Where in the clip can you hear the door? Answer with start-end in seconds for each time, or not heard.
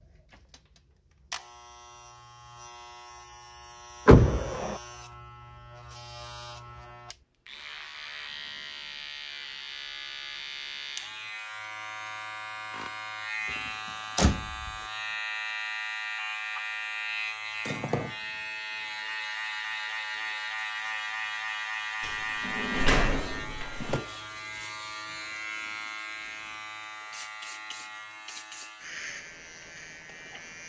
4.0-4.8, 14.2-14.8, 22.0-24.0.